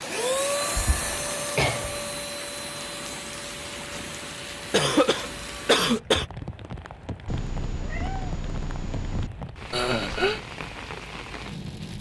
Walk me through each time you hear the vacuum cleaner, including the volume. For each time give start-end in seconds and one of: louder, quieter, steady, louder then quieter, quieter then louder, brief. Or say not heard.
0.0-5.8 quieter.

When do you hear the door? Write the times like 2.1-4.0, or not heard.
not heard.